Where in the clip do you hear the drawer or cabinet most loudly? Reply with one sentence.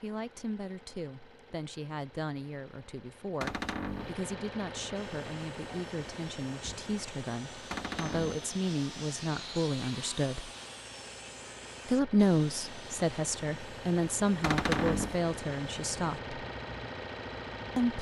The loudest moment of the drawer or cabinet is at 15 seconds.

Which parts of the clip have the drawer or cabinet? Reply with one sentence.
You can hear the drawer or cabinet from 3.4 to 4.2 s, from 7.7 to 8.4 s and from 14.4 to 15.2 s.